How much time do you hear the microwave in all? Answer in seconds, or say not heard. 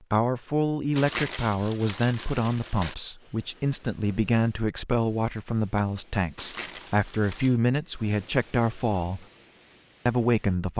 not heard.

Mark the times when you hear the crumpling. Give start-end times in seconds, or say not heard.
0.9-3.0, 6.3-7.5.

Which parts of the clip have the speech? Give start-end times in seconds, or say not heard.
0.1-9.2, 10.1-10.7.